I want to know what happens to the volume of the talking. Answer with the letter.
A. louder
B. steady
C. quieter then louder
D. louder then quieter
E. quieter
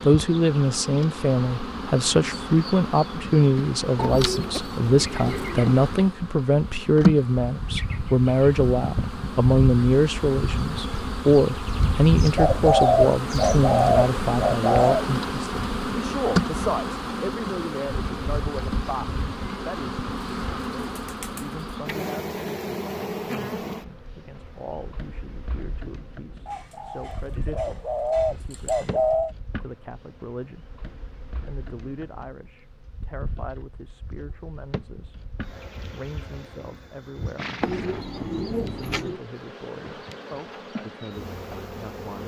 E.